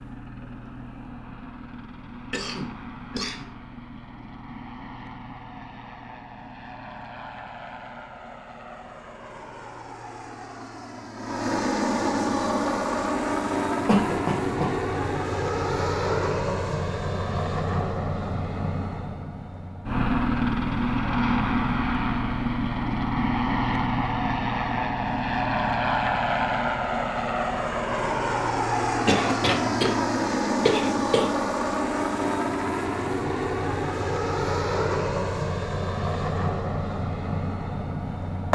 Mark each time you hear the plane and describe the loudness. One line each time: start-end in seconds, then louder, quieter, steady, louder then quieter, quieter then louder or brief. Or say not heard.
0.0-38.4 louder.